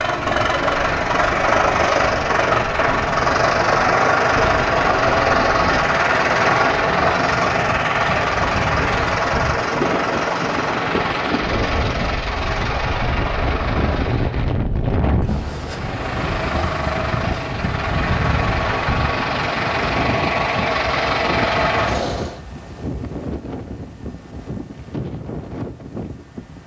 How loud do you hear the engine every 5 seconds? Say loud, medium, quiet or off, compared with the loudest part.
loud, loud, medium, medium, loud, off.